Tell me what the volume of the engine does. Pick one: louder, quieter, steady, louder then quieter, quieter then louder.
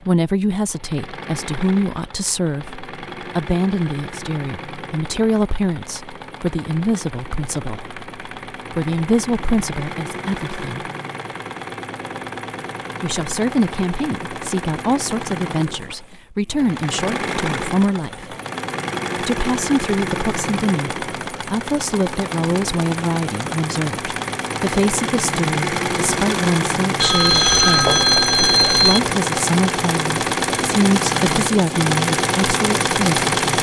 louder.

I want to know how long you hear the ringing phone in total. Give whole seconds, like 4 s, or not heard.
2 s.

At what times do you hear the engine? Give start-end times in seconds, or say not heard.
0.0-33.5.